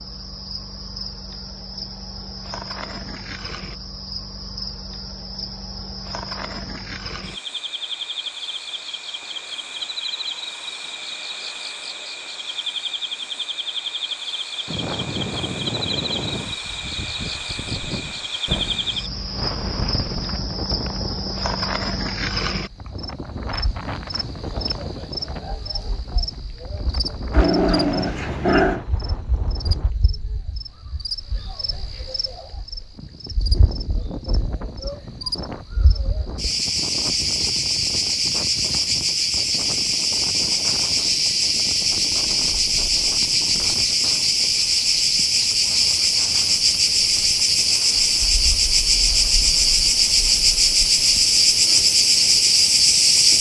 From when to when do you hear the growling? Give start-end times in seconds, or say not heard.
27.3-28.8.